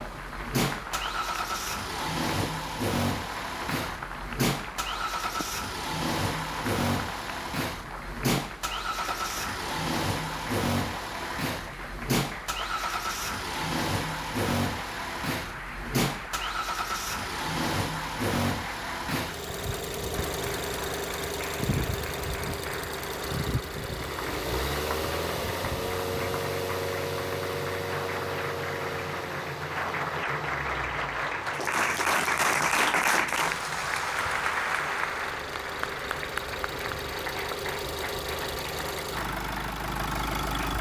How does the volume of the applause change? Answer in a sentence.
The loudness of the applause goes up.